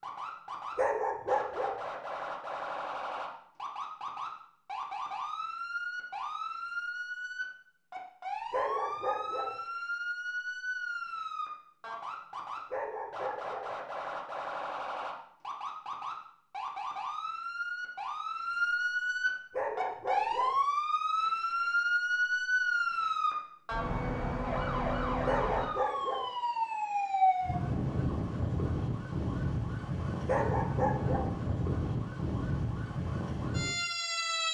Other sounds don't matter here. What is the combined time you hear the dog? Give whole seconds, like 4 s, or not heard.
6 s.